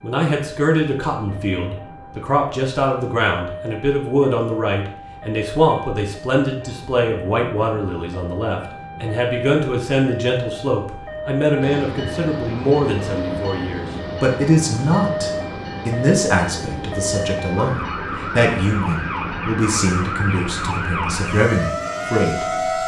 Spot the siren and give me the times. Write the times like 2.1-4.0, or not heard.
0.0-22.8.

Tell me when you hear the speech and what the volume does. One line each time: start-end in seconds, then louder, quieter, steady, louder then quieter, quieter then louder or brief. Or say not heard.
0.0-22.8 steady.